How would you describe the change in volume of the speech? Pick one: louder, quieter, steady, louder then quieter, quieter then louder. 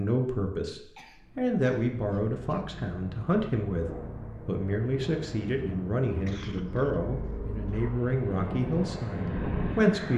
steady.